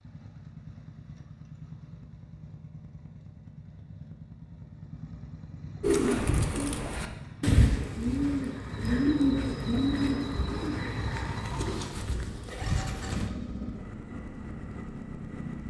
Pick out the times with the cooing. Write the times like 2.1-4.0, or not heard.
5.8-13.3.